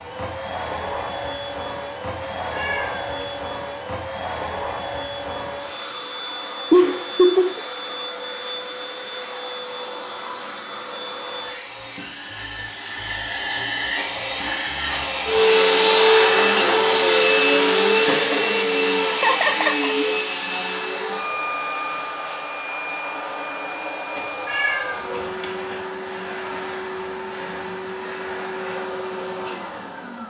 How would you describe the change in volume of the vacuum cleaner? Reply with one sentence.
The loudness of the vacuum cleaner goes up, then down.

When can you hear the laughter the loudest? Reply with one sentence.
The loudest moment of the laughter is at 7 seconds.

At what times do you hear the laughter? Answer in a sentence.
You can hear the laughter from 6.7 to 7.6 s and from 19.2 to 19.9 s.